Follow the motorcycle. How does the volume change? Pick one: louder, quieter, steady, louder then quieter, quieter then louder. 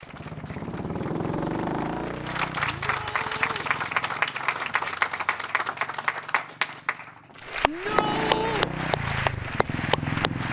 quieter then louder.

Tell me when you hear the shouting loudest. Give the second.
8 s.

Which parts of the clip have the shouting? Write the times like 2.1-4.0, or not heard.
2.9-3.7, 7.7-8.7.